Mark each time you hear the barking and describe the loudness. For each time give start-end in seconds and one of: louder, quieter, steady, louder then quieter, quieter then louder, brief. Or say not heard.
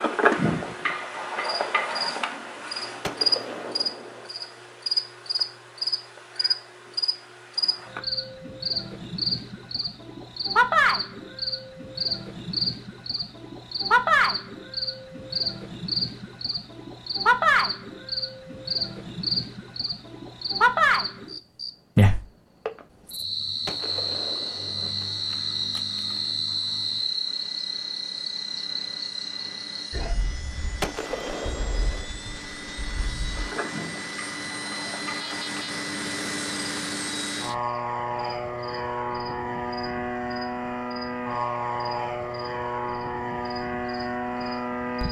not heard.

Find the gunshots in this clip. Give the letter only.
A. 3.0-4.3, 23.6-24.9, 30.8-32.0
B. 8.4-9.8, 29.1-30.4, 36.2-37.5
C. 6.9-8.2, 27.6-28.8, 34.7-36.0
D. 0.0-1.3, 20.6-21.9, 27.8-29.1
A.